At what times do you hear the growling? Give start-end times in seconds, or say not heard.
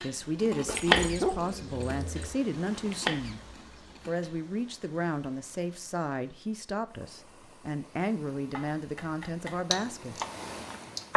0.7-2.4.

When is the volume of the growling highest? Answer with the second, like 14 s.
1 s.